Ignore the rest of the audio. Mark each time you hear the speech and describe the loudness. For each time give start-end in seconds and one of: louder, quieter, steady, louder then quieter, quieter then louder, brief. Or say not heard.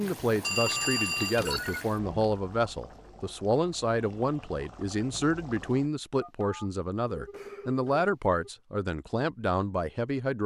0.0-10.4 steady.